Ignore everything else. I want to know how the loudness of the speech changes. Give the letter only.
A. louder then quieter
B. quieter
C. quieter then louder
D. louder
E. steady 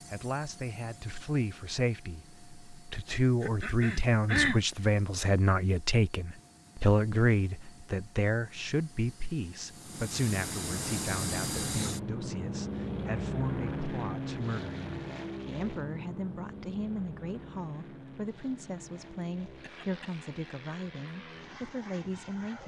B.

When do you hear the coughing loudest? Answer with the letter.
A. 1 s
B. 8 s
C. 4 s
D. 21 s
C.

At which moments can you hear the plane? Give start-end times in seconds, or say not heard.
0.0-22.6.